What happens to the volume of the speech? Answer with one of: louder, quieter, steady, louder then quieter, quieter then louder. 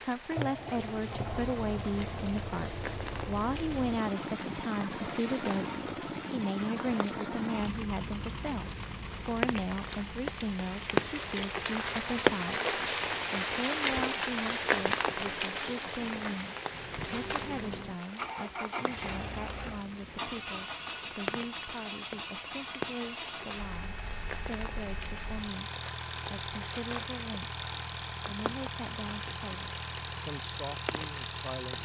quieter.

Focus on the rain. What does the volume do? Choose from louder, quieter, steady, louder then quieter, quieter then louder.
louder then quieter.